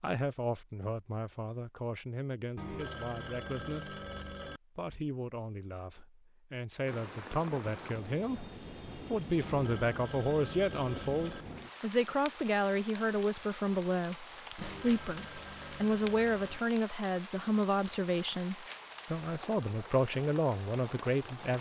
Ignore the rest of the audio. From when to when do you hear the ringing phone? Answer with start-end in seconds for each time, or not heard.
2.5-4.6, 9.4-11.4, 14.6-16.6.